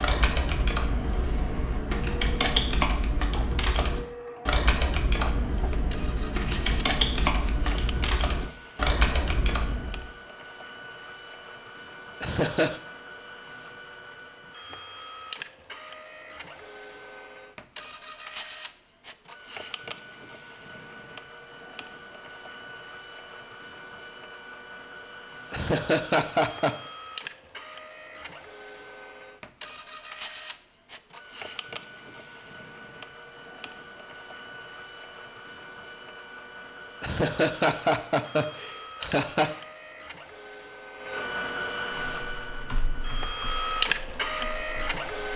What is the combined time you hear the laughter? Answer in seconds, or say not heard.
4 s.